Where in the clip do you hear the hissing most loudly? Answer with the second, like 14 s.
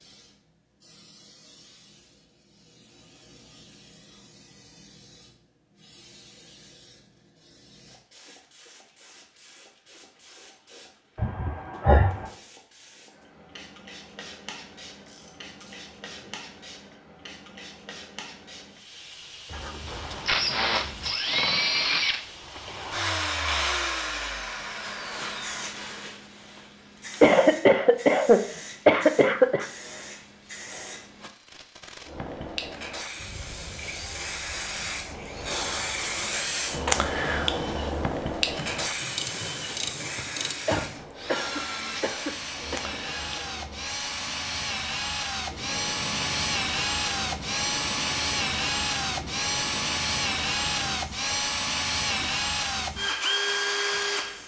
37 s.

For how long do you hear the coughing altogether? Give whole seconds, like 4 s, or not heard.
6 s.